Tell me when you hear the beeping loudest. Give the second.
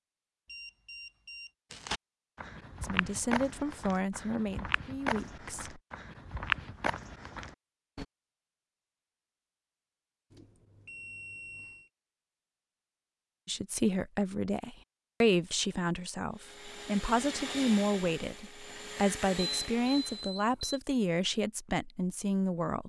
20 s.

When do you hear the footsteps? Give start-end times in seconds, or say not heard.
1.7-8.1.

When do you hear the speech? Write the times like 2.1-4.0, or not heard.
2.8-5.8, 13.4-22.8.